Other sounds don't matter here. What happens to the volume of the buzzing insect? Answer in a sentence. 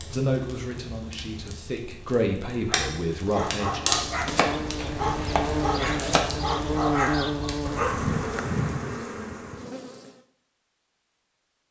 The loudness of the buzzing insect goes up, then down.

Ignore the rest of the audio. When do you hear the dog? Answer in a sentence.
You can hear the dog from 2.6 to 8.1 s.